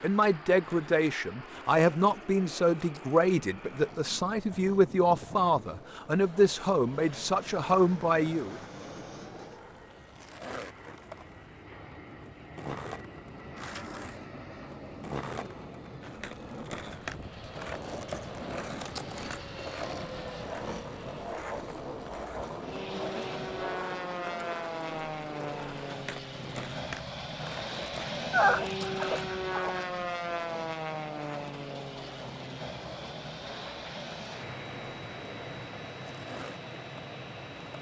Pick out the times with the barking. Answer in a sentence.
You can hear the barking from 28.3 to 29.8 s.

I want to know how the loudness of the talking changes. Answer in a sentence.
The loudness of the talking stays about the same.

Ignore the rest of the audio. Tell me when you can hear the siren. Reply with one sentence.
You can't hear the siren here.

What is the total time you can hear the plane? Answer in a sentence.
The plane can be heard for 38 seconds in total.